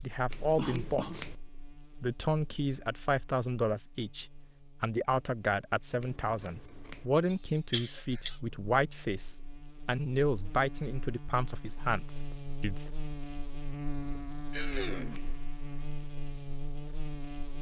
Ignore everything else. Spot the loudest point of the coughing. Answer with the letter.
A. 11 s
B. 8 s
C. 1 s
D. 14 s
B.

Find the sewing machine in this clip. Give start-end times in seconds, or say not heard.
not heard.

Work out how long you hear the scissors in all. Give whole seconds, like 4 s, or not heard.
3 s.